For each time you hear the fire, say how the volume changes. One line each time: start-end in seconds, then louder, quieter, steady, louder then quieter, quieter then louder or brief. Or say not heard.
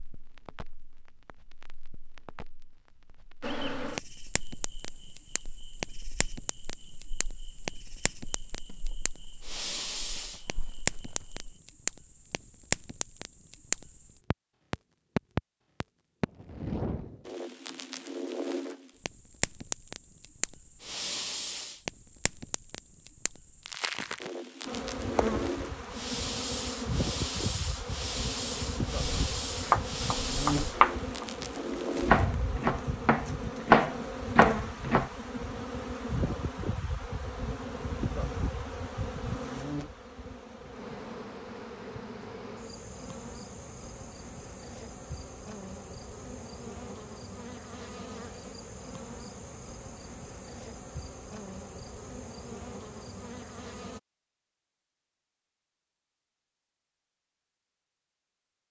0.0-32.3 louder.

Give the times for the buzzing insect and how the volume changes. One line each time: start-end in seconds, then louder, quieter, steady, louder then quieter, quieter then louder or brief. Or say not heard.
3.4-11.6 quieter
24.6-54.0 quieter.